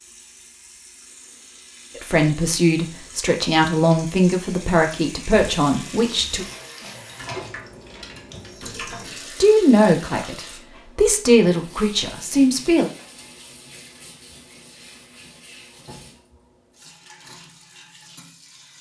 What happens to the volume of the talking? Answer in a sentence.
The volume of the talking stays about the same.